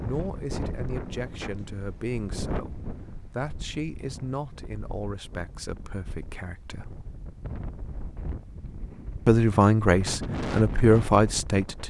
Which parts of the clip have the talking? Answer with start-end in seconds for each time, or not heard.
0.0-7.0, 9.2-11.8.